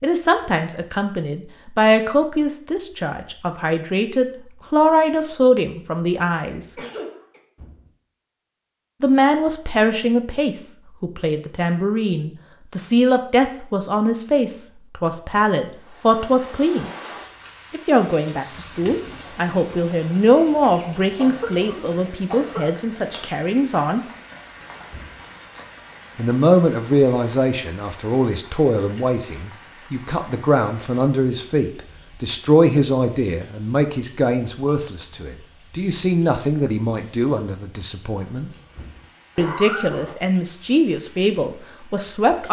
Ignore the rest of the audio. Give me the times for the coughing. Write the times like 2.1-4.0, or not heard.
6.5-7.4, 21.1-22.6, 38.3-40.1.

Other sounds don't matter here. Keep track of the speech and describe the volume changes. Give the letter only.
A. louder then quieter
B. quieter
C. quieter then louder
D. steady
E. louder
D.